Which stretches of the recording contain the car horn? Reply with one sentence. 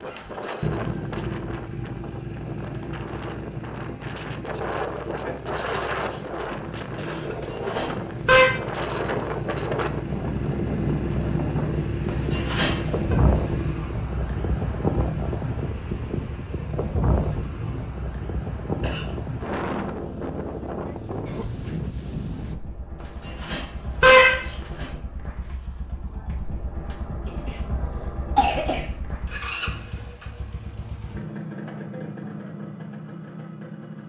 You can hear the car horn from 7.7 to 8.5 s, from 12.1 to 13.2 s and from 23.4 to 24.9 s.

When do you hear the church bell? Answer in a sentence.
The church bell can't be heard in this clip.